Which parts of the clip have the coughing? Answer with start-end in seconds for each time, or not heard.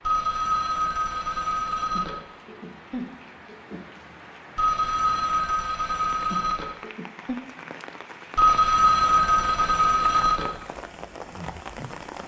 1.9-3.9, 6.3-7.3.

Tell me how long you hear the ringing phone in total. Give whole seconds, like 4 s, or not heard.
6 s.